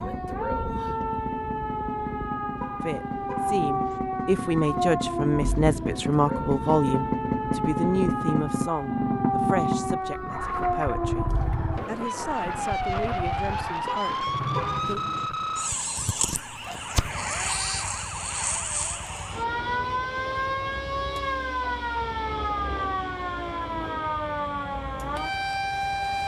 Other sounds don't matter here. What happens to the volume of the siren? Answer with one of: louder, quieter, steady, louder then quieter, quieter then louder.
steady.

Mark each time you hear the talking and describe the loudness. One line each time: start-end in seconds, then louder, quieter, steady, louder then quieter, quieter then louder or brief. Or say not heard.
2.8-15.0 quieter.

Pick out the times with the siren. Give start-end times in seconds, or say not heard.
0.0-26.2.